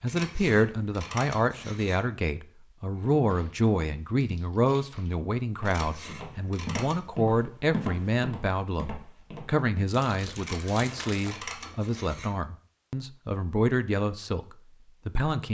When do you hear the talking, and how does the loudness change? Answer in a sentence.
You can hear the talking from 0.0 to 15.4 s, at a steady volume.